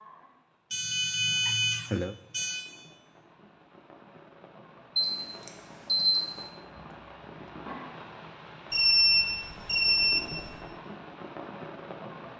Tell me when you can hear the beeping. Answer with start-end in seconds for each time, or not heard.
0.7-2.6, 5.0-6.4, 8.7-10.5.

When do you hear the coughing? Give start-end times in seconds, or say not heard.
1.4-2.1.